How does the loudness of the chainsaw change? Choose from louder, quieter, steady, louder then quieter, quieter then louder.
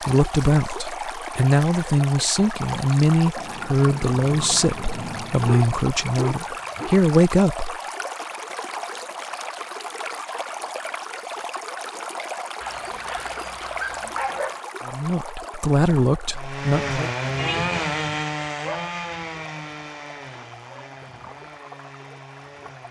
quieter.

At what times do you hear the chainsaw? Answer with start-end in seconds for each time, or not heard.
16.4-22.8.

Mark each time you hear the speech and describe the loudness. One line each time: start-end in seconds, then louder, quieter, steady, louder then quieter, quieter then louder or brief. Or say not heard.
0.0-7.8 steady
14.8-17.1 brief.